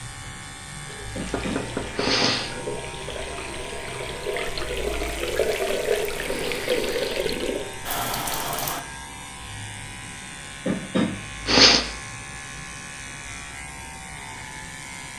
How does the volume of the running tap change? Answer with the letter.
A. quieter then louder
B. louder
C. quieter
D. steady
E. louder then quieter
B.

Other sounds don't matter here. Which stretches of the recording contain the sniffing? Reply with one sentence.
The sniffing can be heard from 1.1 to 2.5 s, from 5.3 to 7.3 s and from 10.7 to 11.8 s.